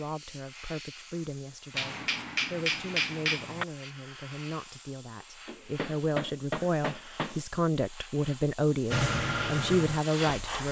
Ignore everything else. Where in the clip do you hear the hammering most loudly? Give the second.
3 s.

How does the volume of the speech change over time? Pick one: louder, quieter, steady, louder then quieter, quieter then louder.
louder.